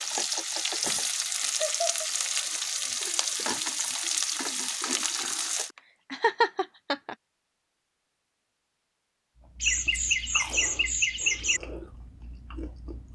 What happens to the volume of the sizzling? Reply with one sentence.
The volume of the sizzling stays about the same.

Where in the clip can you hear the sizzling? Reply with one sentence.
You can hear the sizzling from 0.0 to 5.8 s.